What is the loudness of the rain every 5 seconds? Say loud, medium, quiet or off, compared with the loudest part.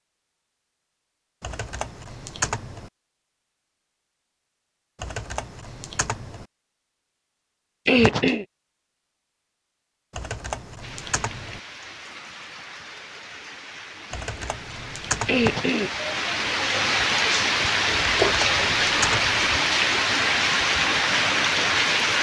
off, off, quiet, loud, loud.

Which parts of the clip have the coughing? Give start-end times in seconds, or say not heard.
7.8-8.4, 15.2-16.1.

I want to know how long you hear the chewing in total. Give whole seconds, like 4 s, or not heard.
not heard.